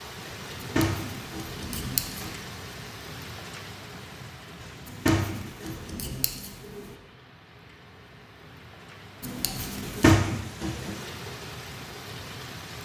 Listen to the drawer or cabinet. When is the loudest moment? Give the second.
10 s.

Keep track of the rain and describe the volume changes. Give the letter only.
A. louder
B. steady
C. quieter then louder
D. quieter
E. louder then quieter
C.